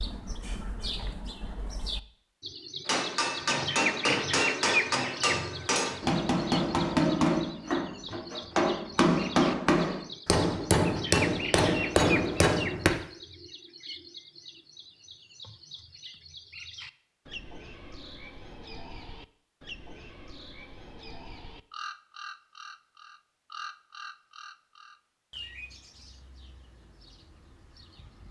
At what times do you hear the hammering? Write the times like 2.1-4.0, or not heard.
2.9-12.9.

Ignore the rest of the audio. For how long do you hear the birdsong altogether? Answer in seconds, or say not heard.
28 s.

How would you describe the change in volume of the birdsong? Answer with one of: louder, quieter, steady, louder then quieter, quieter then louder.
quieter.